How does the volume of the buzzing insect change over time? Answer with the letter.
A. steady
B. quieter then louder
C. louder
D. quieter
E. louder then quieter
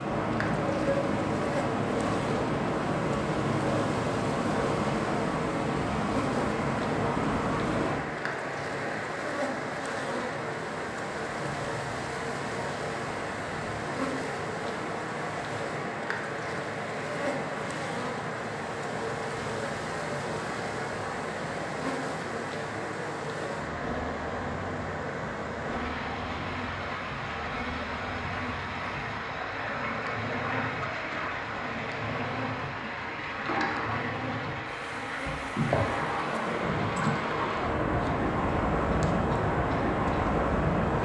A.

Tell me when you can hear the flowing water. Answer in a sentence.
The flowing water can be heard from 0.0 to 41.0 s.